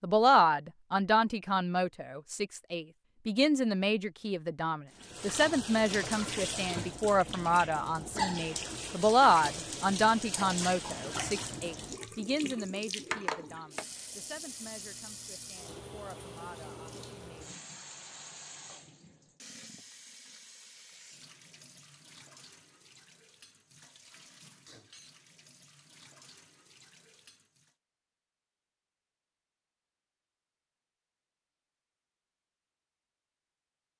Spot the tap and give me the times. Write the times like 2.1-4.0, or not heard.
4.9-27.8.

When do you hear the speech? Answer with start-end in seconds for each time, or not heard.
0.0-17.6.